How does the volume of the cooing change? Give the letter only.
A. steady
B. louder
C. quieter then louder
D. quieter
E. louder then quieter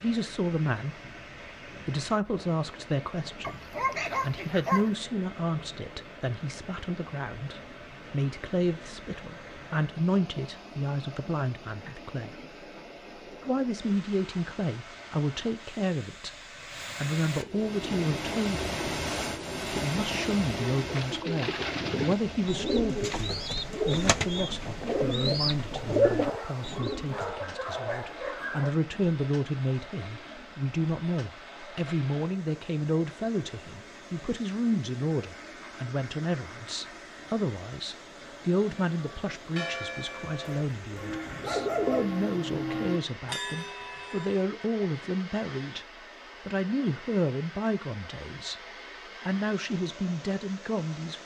B.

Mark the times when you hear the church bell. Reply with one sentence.
The church bell can be heard from 38.9 to 44.5 s.